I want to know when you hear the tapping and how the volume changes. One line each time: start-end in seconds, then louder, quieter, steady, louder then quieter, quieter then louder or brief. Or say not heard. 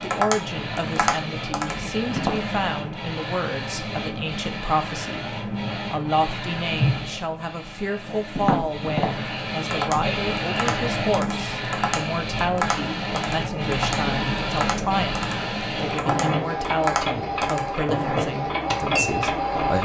0.0-2.7 brief
8.1-19.2 quieter then louder.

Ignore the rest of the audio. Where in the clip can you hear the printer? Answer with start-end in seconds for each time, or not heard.
0.0-19.8.